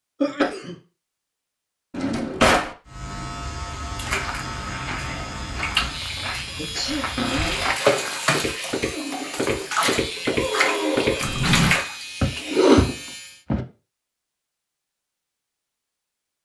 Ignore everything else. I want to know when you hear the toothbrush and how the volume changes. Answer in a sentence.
The toothbrush can't be heard in this clip.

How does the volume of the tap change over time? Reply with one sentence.
The volume of the tap goes down, then up.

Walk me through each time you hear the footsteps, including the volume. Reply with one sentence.
You can hear the footsteps from 4.1 to 13.7 s, getting louder.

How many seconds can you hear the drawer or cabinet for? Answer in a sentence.
You can hear the drawer or cabinet for 2 seconds altogether.